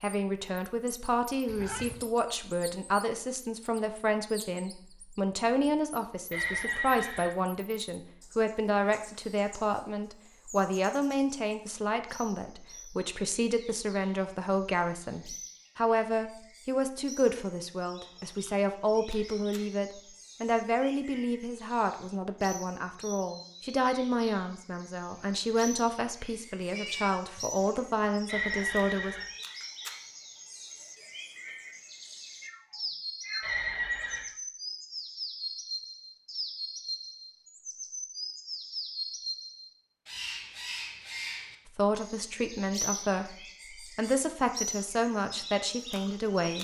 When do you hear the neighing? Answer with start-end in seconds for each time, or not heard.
6.3-7.3, 28.2-29.2, 33.4-34.2.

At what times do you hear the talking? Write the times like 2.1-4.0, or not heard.
0.0-29.1, 41.6-46.6.